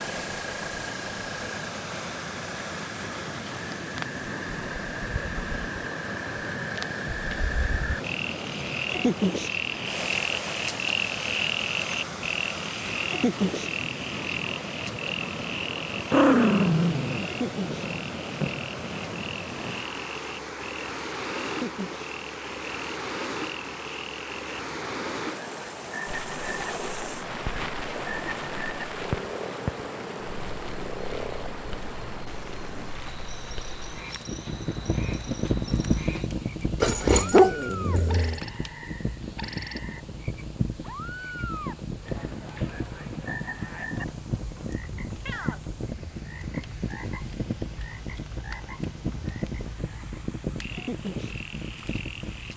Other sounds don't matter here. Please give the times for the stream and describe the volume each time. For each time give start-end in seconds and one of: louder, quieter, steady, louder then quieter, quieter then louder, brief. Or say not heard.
0.0-52.5 quieter.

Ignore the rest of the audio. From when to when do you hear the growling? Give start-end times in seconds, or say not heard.
16.1-18.5, 36.8-38.4.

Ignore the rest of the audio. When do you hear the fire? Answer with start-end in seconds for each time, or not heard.
26.1-52.5.